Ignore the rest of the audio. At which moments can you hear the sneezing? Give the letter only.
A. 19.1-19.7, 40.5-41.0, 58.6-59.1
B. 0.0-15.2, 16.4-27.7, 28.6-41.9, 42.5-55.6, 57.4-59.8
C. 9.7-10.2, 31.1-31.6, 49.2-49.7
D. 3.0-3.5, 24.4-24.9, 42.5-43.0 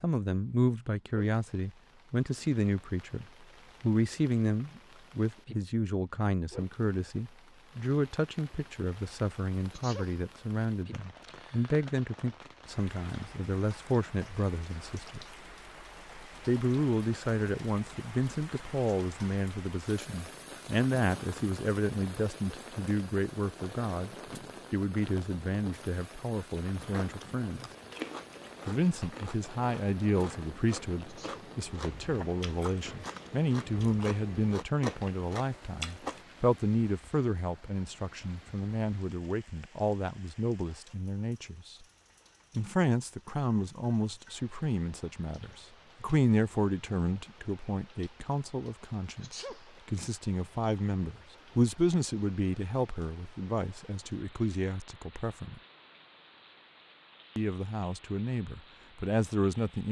C.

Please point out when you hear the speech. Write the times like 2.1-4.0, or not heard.
0.0-15.2, 16.4-27.7, 28.6-41.9, 42.5-55.6, 57.4-59.8.